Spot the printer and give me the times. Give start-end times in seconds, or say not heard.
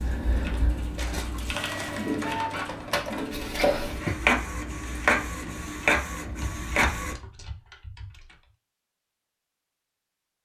0.0-7.2.